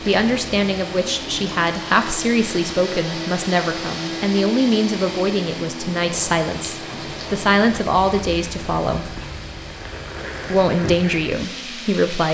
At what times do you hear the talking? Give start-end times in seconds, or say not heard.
0.1-9.1, 10.5-12.2.